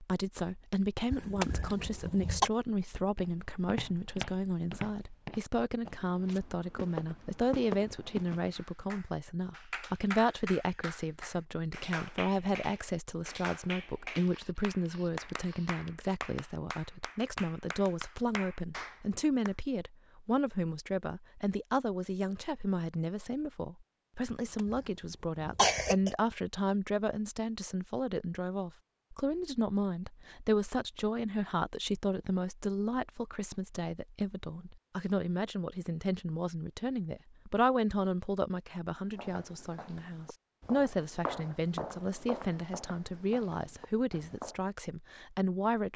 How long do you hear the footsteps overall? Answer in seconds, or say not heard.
11 s.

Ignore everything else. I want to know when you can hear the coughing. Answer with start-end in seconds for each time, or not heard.
1.1-2.5, 24.2-24.8, 25.4-26.1.